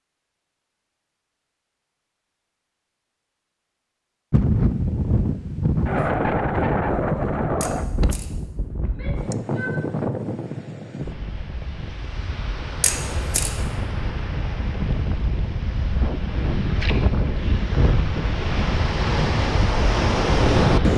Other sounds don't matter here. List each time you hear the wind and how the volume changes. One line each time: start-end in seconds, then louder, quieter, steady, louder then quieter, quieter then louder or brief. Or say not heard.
4.3-20.9 quieter then louder.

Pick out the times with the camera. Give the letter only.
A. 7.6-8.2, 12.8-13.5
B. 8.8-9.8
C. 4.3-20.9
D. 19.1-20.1
A.